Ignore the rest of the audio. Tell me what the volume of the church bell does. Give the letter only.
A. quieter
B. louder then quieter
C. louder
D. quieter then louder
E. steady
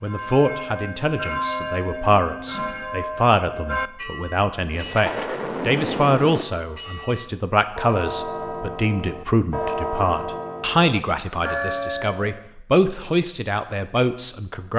D.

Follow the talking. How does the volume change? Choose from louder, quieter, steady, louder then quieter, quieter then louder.
steady.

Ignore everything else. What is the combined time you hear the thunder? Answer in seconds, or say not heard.
2 s.